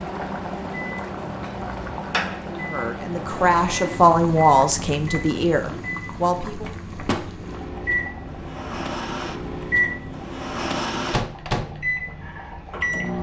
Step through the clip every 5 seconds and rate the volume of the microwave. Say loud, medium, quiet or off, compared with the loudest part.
medium, loud, loud.